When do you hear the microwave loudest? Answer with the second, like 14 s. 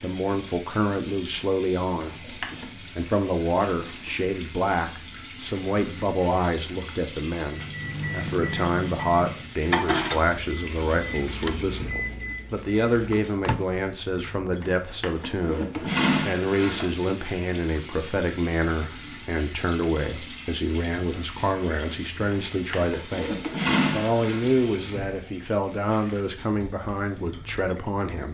10 s.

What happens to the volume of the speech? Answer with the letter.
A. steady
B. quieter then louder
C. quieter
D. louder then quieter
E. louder
A.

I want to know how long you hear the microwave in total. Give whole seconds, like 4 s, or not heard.
6 s.